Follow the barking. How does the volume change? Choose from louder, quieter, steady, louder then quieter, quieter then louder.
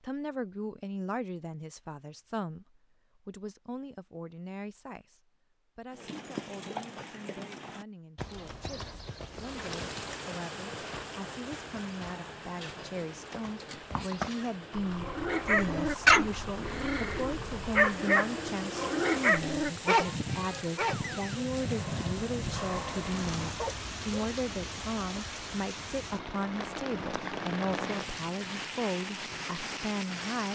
quieter.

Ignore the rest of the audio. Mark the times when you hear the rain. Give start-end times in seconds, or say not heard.
9.3-30.5.